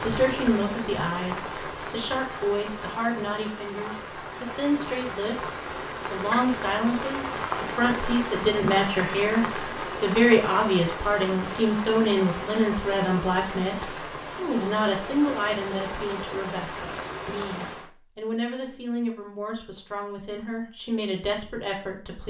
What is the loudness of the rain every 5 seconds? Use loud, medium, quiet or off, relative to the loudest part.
loud, loud, loud, loud, off.